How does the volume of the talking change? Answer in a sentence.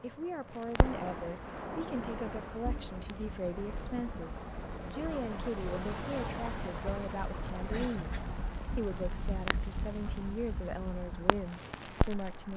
The loudness of the talking stays about the same.